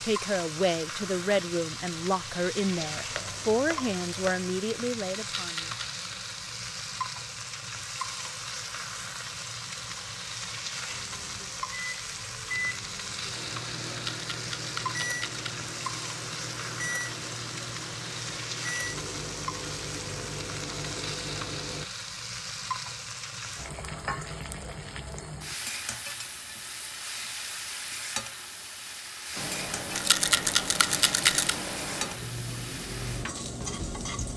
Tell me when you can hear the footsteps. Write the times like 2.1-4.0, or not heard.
not heard.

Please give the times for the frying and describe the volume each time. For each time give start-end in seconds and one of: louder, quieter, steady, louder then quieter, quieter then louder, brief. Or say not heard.
0.0-34.3 steady.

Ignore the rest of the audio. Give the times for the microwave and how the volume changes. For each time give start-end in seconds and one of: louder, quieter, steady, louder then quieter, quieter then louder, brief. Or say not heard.
10.8-21.9 steady
29.4-34.3 steady.